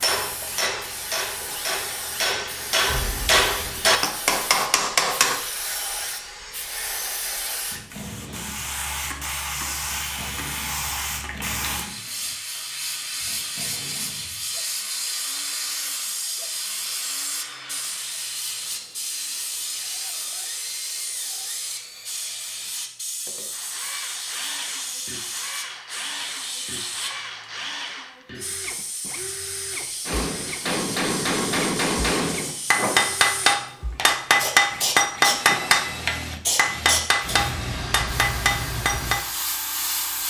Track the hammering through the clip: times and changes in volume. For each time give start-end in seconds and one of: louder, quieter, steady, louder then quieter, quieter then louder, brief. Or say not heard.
0.0-5.4 louder
30.1-39.2 louder then quieter.